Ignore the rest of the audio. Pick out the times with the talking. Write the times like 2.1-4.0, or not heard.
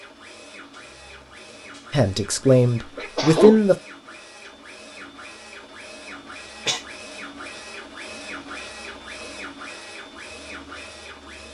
1.9-3.8.